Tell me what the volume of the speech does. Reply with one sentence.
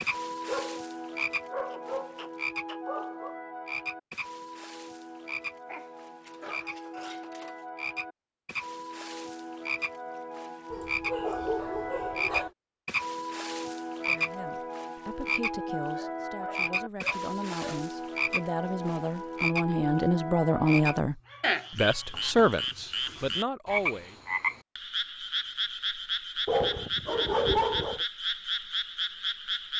The volume of the speech goes up.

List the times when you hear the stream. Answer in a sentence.
The stream can't be heard in this clip.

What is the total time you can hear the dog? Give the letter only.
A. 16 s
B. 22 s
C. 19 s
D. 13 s
D.